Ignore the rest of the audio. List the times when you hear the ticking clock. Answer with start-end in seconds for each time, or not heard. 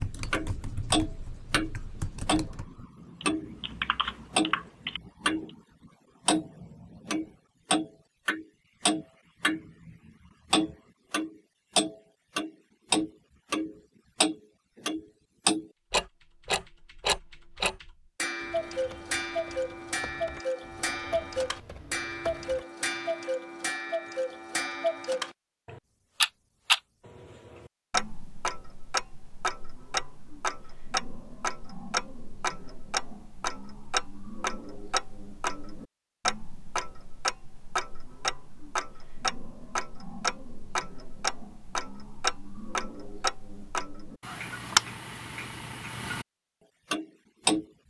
0.3-5.5, 6.2-46.2, 46.9-47.6.